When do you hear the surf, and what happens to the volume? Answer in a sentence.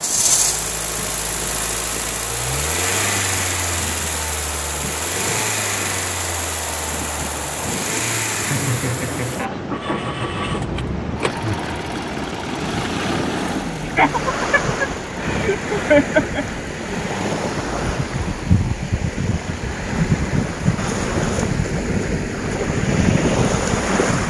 You can hear the surf from 0.0 to 24.2 s, getting louder.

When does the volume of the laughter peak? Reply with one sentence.
The volume of the laughter peaks at 16 seconds.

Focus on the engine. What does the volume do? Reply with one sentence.
The volume of the engine goes down.